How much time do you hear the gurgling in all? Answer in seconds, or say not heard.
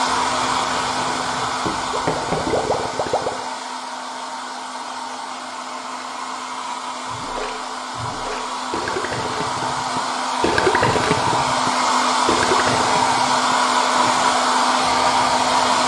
12 s.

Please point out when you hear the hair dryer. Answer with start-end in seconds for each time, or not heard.
0.0-15.8.